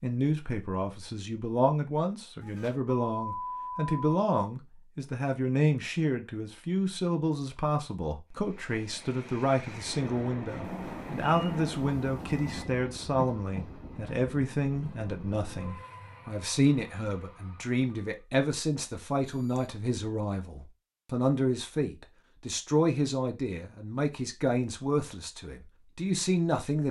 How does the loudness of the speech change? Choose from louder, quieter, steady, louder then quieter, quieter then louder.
steady.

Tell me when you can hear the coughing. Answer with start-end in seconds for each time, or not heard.
not heard.